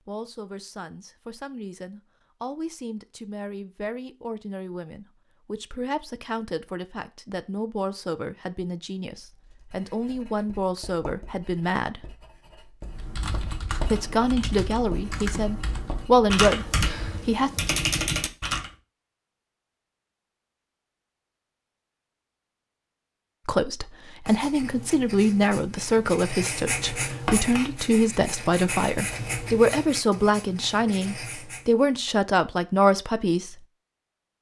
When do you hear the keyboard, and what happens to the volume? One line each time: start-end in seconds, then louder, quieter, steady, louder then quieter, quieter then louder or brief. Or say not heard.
12.8-18.7 louder.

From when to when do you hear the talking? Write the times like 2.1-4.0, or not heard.
0.1-12.1, 13.8-17.5, 23.4-33.6.